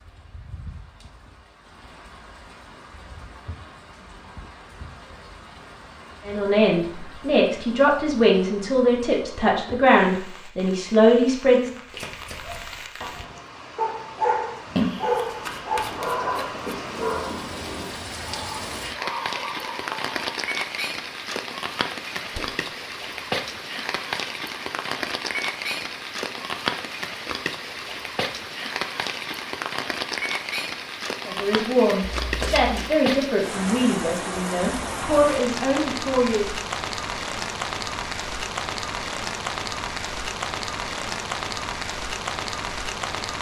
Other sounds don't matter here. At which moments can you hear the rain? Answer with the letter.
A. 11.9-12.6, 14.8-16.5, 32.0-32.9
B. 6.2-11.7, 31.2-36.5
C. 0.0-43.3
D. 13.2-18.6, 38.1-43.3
C.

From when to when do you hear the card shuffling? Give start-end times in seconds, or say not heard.
11.9-12.6, 14.8-16.5, 32.0-32.9.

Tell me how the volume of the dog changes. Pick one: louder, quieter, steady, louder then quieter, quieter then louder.
louder then quieter.